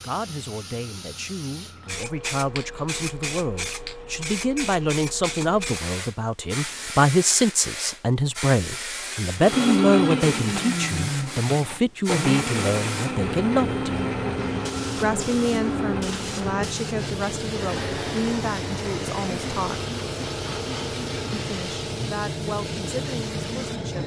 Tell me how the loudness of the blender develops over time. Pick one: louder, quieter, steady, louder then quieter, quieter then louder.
quieter.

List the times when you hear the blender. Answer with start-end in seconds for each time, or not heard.
9.3-21.9.